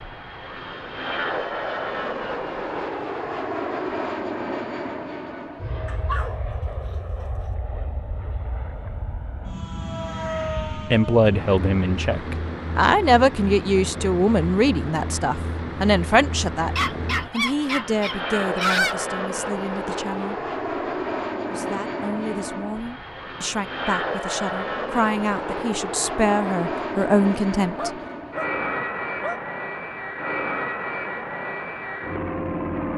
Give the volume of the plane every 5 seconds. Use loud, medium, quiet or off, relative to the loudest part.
loud, medium, loud, loud, loud, loud, loud.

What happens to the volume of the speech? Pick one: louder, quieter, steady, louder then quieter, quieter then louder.
quieter then louder.